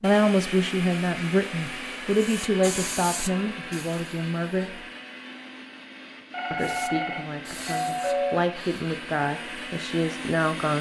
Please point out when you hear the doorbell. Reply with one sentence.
You can hear the doorbell from 6.3 to 8.3 s.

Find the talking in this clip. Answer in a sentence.
You can hear the talking from 0.0 to 4.8 s and from 6.5 to 10.7 s.